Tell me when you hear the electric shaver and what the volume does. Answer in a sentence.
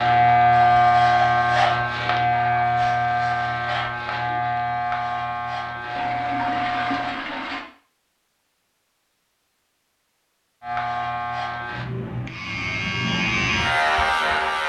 You can hear the electric shaver from 0.0 to 7.2 s, getting quieter; and from 10.6 to 14.6 s, getting louder.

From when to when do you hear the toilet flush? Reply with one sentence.
You can hear the toilet flush from 6.0 to 7.7 s.